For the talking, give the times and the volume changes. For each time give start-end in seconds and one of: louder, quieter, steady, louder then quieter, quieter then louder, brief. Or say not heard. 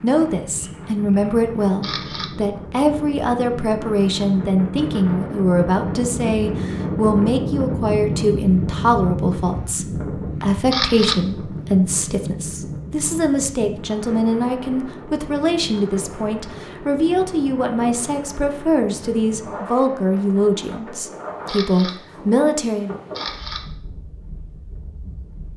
0.0-22.9 steady.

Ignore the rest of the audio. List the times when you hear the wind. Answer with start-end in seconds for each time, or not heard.
0.0-25.5.